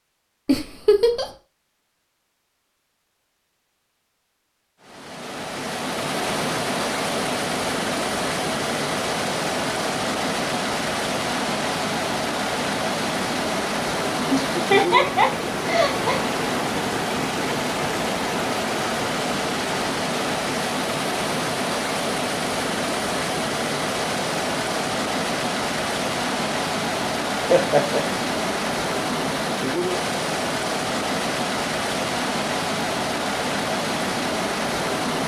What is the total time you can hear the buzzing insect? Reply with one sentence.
The buzzing insect can't be heard in this clip.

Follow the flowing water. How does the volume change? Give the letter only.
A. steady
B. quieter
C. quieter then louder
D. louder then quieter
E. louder
A.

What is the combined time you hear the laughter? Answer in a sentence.
The laughter can be heard for 3 seconds in total.